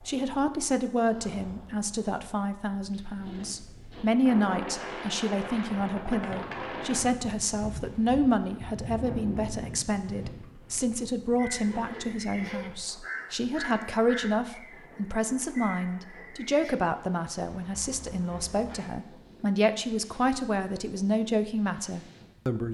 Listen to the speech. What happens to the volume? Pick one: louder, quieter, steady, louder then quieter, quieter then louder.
steady.